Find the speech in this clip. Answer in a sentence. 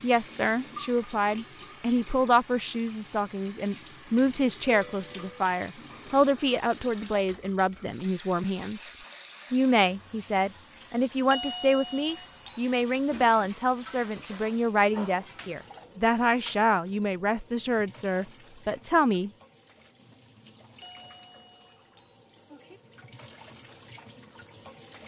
The speech can be heard from 0.0 to 19.3 s.